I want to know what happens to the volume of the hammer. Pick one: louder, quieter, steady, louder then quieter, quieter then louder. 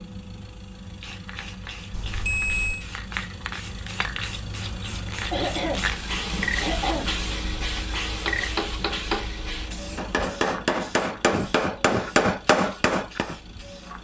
louder.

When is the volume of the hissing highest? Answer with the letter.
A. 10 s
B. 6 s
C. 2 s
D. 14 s
B.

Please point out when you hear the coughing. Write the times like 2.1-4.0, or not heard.
5.3-7.1.